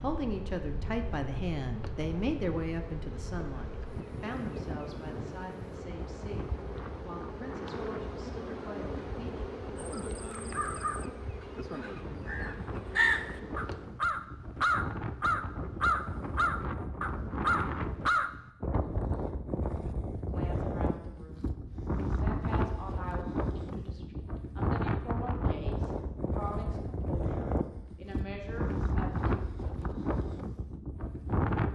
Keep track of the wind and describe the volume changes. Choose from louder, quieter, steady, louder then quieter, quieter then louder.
louder.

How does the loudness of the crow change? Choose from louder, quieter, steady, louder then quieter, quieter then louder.
louder.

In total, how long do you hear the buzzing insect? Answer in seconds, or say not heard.
14 s.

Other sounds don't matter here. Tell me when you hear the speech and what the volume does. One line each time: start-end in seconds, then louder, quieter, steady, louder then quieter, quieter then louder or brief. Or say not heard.
0.0-9.4 quieter
20.1-21.5 brief
22.1-29.4 steady.